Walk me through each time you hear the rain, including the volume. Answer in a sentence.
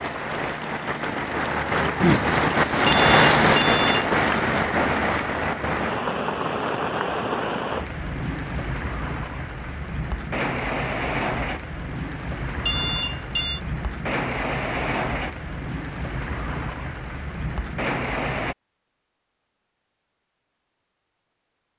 The rain can be heard from 0.0 to 18.6 s, getting quieter.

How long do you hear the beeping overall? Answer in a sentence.
The beeping can be heard for 2 seconds in total.